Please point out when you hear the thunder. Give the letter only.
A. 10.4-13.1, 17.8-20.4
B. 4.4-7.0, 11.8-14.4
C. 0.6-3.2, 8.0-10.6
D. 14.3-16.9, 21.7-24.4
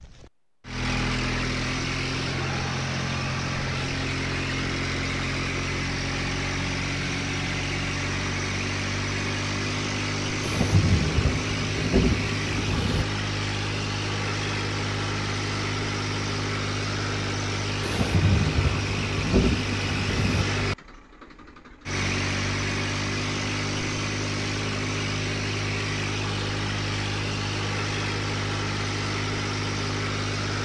A.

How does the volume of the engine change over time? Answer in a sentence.
The volume of the engine stays about the same.